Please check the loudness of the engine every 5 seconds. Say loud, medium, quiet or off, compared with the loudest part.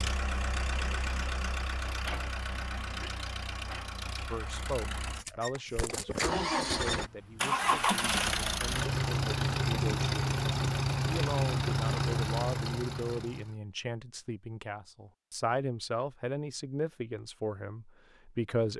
medium, loud, loud, off.